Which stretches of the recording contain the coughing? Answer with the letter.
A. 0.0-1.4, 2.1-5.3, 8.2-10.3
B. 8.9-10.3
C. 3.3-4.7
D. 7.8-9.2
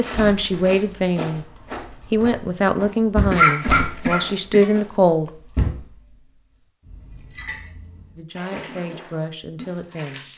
C.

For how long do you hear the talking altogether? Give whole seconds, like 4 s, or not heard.
7 s.